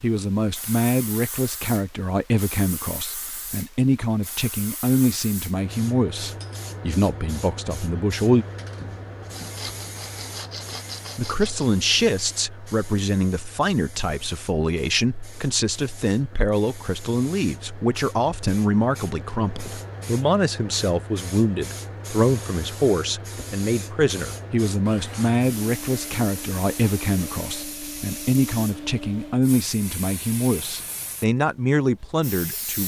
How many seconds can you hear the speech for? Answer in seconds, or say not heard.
30 s.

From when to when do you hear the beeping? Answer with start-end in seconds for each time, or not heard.
not heard.